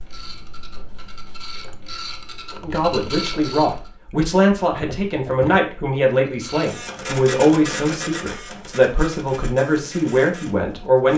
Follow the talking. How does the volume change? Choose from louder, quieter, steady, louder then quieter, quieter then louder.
steady.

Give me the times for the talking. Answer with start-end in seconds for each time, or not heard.
2.6-11.1.